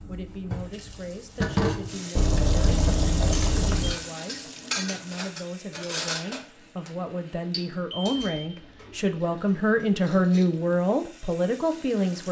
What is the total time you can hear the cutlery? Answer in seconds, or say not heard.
7 s.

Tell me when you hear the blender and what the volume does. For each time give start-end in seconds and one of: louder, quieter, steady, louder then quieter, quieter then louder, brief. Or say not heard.
not heard.